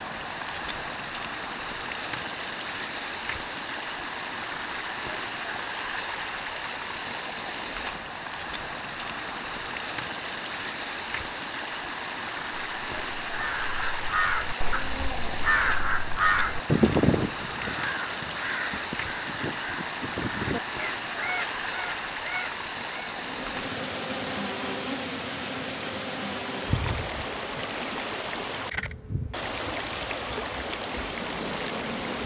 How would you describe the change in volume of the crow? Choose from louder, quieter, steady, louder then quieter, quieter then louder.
louder then quieter.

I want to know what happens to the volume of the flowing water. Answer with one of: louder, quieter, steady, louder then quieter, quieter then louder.
steady.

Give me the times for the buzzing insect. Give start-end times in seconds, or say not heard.
23.1-32.2.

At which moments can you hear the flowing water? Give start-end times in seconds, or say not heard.
0.0-32.2.